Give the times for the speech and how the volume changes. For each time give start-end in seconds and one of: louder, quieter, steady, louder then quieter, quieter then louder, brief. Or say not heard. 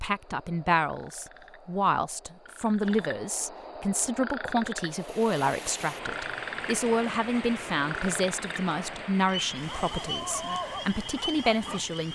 0.0-12.1 steady.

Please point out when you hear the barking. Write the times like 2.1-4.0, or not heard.
9.7-11.9.